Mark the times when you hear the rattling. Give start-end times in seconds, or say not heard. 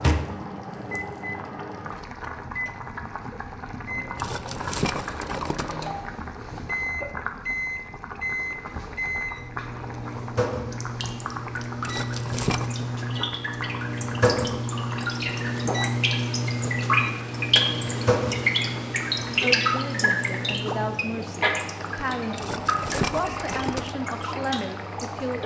4.2-5.8, 11.8-12.7, 22.4-23.9.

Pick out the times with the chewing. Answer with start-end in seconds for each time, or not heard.
not heard.